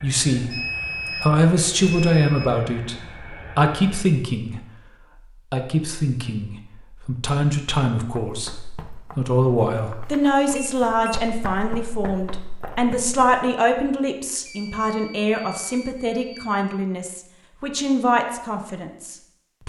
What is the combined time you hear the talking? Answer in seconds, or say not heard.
18 s.